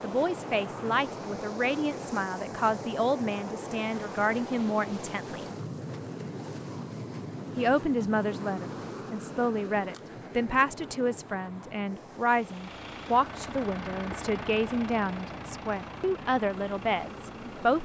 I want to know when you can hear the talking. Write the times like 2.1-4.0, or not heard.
0.0-5.5, 7.5-17.7.